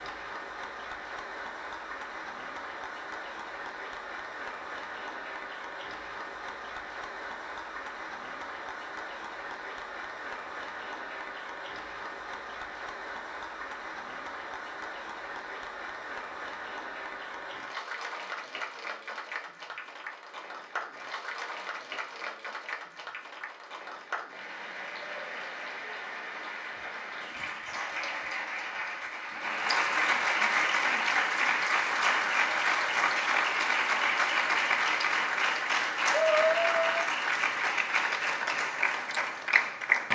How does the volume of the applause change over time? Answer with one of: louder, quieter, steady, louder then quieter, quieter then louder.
louder.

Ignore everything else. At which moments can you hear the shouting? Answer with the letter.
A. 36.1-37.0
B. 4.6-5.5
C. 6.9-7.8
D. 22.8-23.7
A.